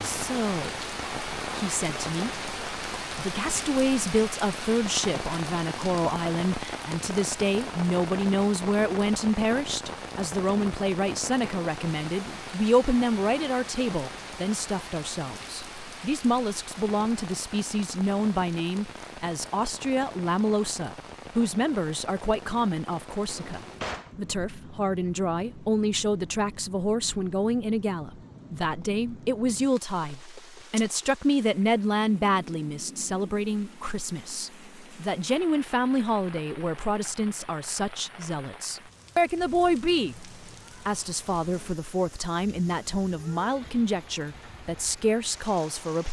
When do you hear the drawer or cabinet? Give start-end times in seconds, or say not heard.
23.3-24.1.